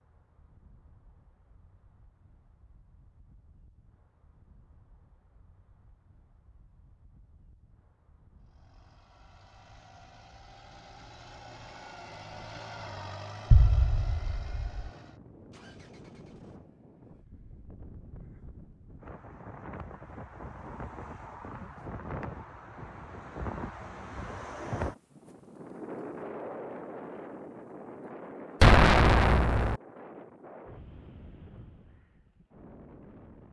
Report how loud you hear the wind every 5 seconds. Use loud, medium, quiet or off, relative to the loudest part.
quiet, quiet, quiet, medium, loud, loud, medium.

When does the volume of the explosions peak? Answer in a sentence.
The volume of the explosions peaks at 29 seconds.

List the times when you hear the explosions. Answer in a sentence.
You can hear the explosions from 13.5 to 14.9 s and from 28.6 to 29.8 s.